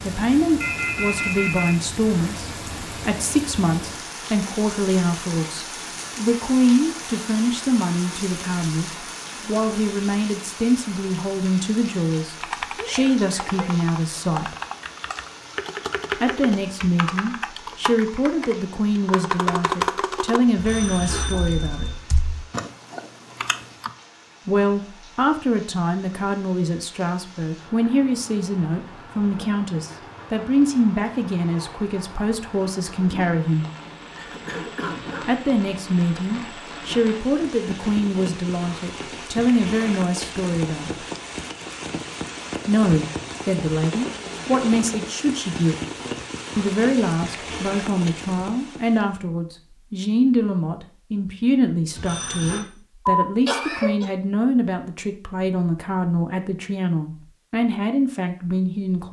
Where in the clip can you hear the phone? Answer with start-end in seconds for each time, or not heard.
0.6-1.7, 20.6-21.9, 52.0-52.6.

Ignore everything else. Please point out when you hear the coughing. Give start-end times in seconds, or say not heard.
12.8-13.9, 34.1-35.4, 53.0-54.1.